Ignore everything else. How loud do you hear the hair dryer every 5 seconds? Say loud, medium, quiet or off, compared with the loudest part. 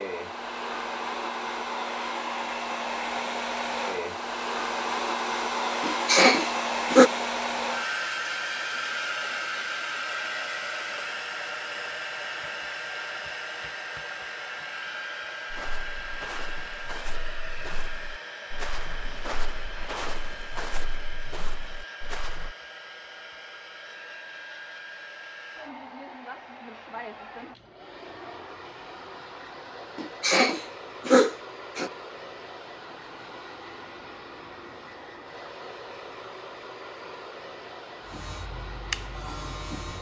loud, loud, medium, medium, quiet, quiet, quiet, quiet.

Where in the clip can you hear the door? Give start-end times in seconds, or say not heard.
not heard.